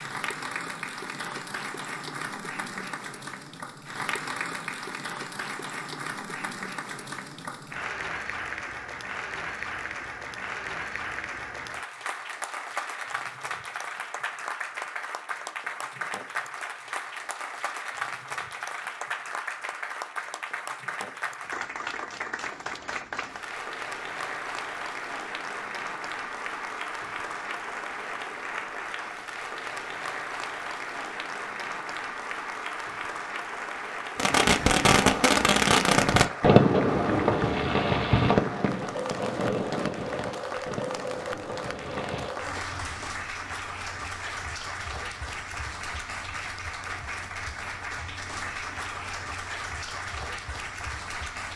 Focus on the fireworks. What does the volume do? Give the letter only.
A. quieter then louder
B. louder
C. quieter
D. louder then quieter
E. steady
C.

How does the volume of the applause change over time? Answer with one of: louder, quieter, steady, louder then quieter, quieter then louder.
steady.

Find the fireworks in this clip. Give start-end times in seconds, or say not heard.
34.1-42.4.